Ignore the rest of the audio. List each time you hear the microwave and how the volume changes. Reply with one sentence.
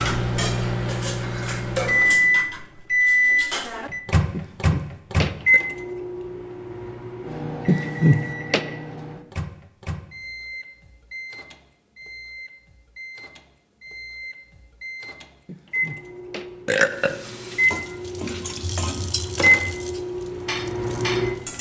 The microwave can be heard from 0.0 to 21.5 s, getting quieter then louder.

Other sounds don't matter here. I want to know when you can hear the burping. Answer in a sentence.
The burping can be heard from 4.3 to 5.6 s, from 7.7 to 8.7 s and from 15.4 to 17.1 s.